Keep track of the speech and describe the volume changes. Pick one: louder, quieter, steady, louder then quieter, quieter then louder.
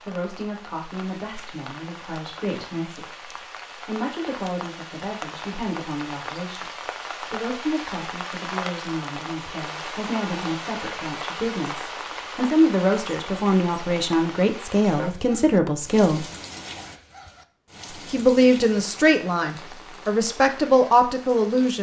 louder.